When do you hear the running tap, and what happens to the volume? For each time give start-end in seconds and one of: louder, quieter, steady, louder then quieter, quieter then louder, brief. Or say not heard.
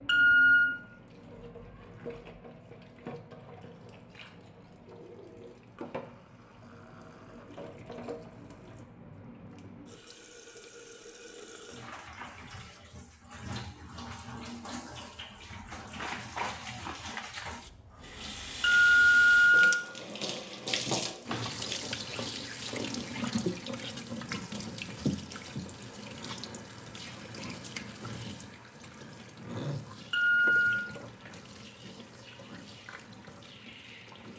0.0-34.3 louder then quieter.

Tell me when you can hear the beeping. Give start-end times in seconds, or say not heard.
0.1-0.7, 18.6-19.7, 30.1-30.9.